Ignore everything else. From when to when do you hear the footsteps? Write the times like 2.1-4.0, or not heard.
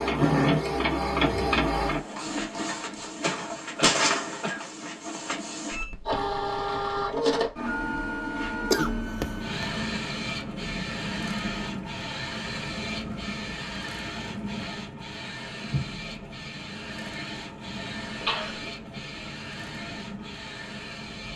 not heard.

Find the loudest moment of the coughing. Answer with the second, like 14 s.
9 s.